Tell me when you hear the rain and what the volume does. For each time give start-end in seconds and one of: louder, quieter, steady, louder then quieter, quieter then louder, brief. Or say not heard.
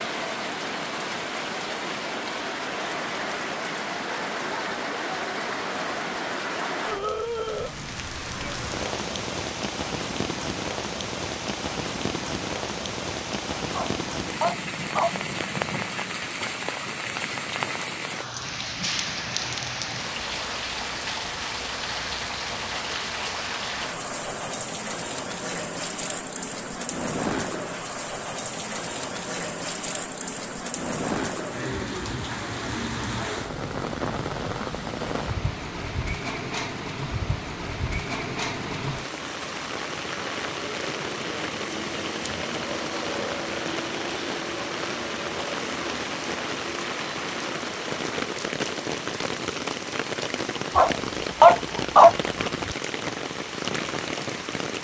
0.0-54.8 steady.